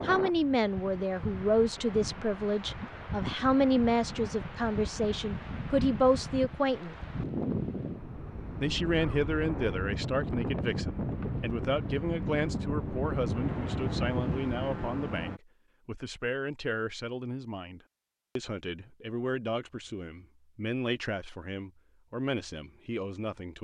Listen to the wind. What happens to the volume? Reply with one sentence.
The loudness of the wind goes up.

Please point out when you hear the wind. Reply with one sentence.
The wind can be heard from 0.0 to 15.4 s.